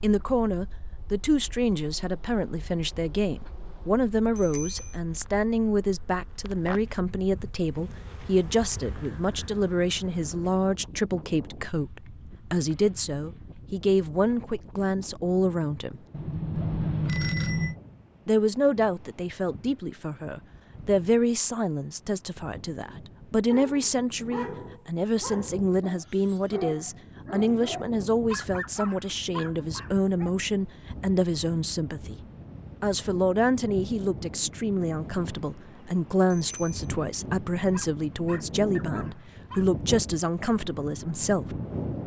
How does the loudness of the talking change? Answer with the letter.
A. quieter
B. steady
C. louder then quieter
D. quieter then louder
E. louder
B.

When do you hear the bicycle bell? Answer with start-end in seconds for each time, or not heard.
4.3-5.0, 16.1-17.8, 36.3-36.9.